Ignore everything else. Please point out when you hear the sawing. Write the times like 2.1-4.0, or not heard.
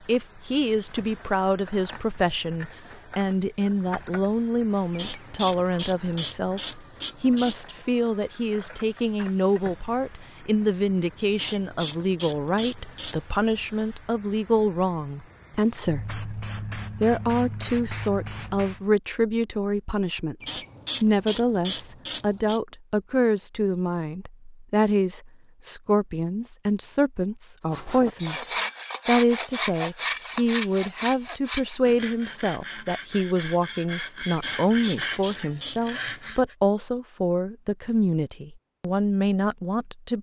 27.7-36.5.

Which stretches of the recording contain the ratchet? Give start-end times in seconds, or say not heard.
4.9-7.5, 11.3-13.2, 20.4-22.6, 34.4-35.8.